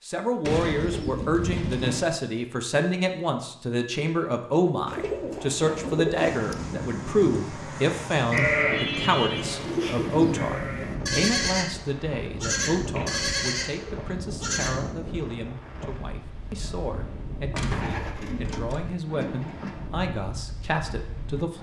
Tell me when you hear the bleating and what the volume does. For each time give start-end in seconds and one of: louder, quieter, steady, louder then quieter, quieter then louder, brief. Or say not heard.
7.5-14.7 quieter then louder.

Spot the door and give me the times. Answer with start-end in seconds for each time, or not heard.
17.5-18.9.